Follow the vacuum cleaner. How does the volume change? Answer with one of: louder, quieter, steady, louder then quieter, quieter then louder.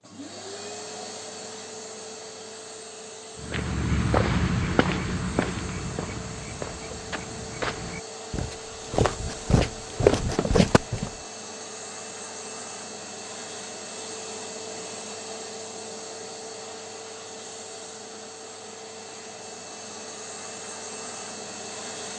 steady.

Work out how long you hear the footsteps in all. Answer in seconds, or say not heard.
8 s.